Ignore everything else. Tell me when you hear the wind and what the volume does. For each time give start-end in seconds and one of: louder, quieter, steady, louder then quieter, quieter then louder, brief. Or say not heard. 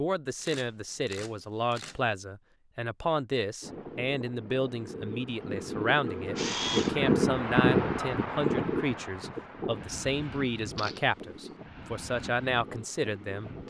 3.6-13.6 louder then quieter.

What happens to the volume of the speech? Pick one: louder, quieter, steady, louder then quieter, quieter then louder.
steady.